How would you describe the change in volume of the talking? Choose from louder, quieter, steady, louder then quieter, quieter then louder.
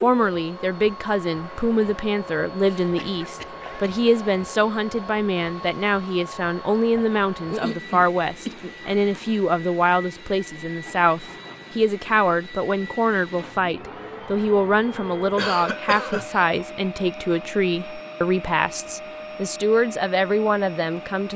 steady.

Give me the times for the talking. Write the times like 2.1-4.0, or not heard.
0.0-21.3.